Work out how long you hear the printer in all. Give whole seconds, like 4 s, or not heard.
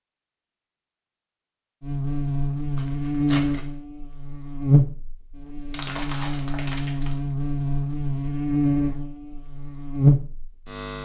not heard.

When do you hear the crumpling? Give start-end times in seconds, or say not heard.
2.8-3.7, 5.7-7.2.